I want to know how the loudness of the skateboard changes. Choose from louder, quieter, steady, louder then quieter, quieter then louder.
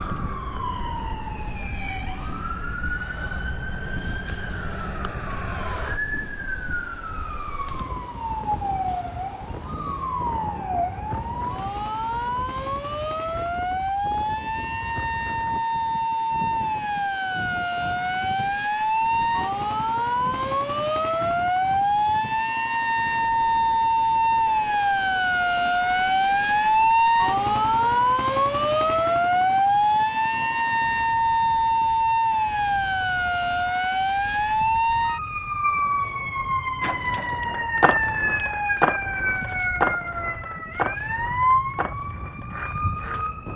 quieter.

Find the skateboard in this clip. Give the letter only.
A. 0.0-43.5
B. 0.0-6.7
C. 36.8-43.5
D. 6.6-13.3
C.